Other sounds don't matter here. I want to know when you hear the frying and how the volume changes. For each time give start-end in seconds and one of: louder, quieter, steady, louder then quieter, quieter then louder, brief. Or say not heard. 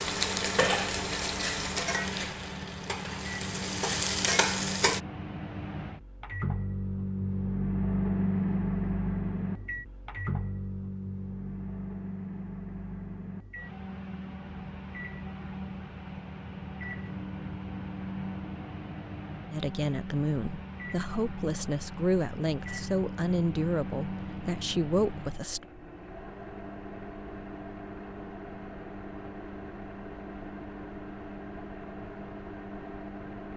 0.0-5.0 quieter then louder.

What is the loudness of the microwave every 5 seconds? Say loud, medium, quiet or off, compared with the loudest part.
medium, loud, medium, medium, medium, medium, medium.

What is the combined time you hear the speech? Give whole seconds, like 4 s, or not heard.
6 s.